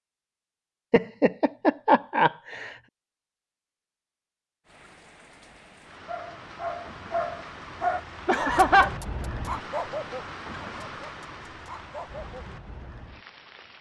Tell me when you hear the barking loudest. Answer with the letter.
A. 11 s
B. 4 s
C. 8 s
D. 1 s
C.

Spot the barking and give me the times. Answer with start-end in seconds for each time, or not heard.
6.0-12.4.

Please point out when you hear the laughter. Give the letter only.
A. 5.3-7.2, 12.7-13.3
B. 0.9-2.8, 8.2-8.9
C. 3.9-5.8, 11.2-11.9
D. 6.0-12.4
B.